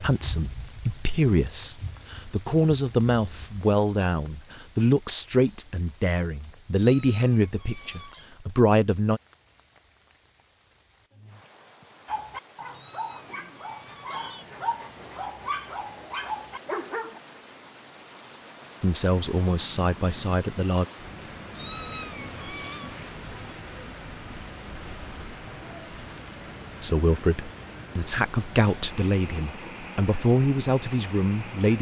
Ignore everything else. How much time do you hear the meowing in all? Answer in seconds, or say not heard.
5 s.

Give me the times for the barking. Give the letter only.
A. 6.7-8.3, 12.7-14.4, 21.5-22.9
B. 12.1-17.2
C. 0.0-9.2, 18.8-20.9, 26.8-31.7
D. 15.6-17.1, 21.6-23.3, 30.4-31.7
B.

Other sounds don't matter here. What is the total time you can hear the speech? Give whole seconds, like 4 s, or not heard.
16 s.